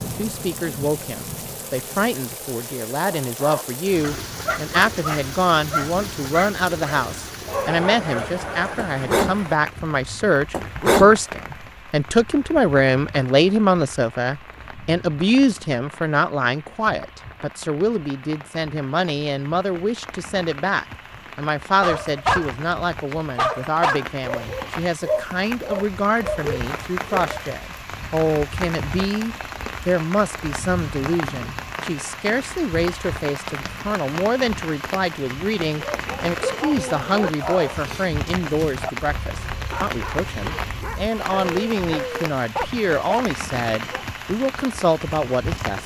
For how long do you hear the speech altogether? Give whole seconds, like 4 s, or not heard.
46 s.